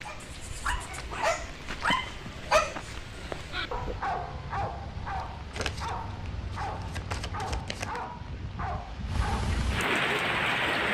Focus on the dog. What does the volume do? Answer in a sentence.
The loudness of the dog goes down.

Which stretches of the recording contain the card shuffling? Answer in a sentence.
You can hear the card shuffling from 0.8 to 2.0 s and from 5.5 to 8.1 s.